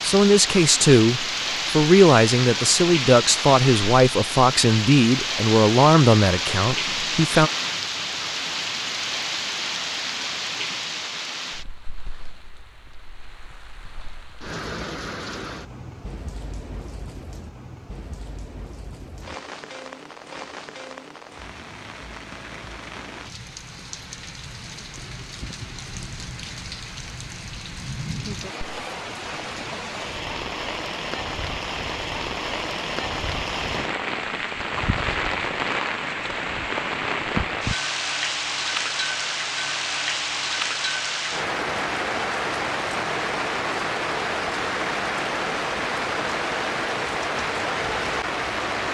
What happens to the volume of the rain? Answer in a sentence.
The loudness of the rain goes down, then up.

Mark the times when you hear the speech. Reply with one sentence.
The speech can be heard from 0.0 to 7.5 s.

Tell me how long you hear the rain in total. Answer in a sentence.
You can hear the rain for 49 seconds altogether.